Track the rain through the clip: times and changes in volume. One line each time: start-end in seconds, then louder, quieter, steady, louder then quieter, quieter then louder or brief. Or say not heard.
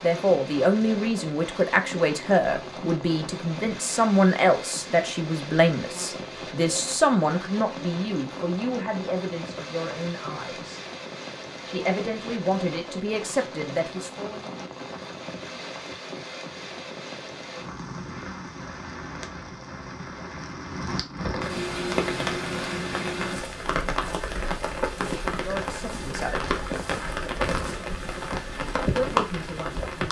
0.0-30.0 louder.